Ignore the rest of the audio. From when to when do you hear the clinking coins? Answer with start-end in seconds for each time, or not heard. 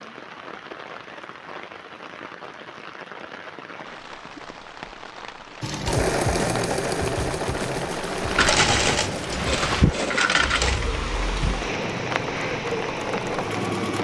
8.3-10.8.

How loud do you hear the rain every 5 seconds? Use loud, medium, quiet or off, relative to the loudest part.
medium, loud, loud.